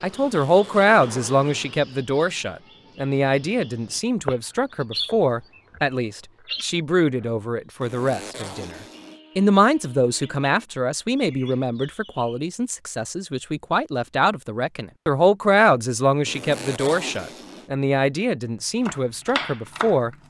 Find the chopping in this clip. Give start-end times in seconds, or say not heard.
18.9-20.2.